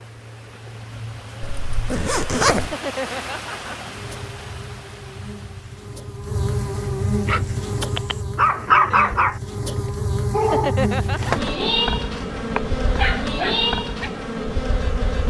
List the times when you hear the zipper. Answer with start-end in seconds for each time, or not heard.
1.4-2.8, 10.9-11.7.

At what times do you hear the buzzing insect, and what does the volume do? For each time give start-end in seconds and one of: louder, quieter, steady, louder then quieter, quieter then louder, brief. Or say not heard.
0.0-15.2 louder.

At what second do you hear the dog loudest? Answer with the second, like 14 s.
9 s.